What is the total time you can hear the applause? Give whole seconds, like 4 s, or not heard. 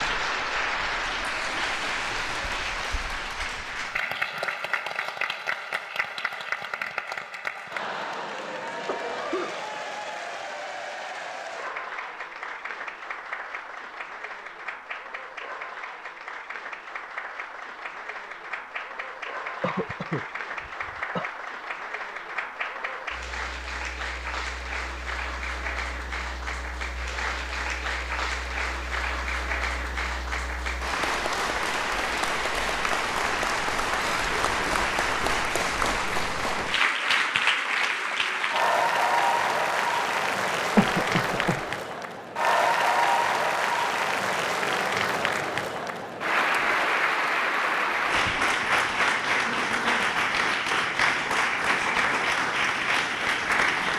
54 s.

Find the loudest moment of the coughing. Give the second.
41 s.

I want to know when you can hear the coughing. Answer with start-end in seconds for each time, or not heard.
8.8-9.7, 19.6-21.2, 40.8-41.6.